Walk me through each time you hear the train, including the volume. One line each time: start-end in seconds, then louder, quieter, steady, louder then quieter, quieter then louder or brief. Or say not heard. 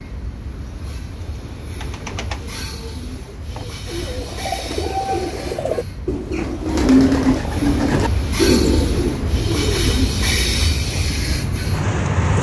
0.0-12.3 louder.